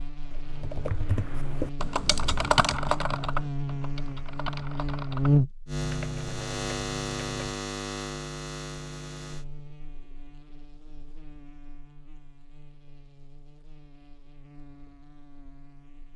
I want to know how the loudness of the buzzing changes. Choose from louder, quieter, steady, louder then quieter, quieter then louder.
louder then quieter.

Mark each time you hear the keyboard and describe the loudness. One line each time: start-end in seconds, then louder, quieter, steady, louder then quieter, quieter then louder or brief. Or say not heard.
0.2-7.3 louder then quieter.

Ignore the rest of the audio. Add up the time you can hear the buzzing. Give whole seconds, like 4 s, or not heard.
16 s.